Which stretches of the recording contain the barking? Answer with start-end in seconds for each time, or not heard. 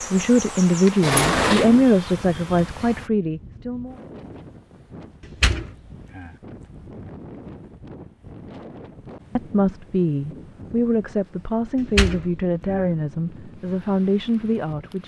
not heard.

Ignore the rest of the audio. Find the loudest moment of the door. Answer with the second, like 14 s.
1 s.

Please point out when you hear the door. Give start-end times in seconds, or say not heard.
1.0-1.9, 5.2-6.3, 11.8-12.8.